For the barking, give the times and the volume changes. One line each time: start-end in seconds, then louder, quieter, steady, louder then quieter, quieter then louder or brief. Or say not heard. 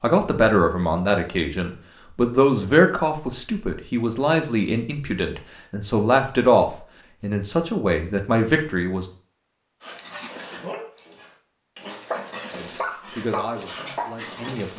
9.8-14.7 quieter then louder.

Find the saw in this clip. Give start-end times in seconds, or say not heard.
not heard.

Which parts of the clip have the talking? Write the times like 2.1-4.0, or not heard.
0.0-9.1, 12.6-14.7.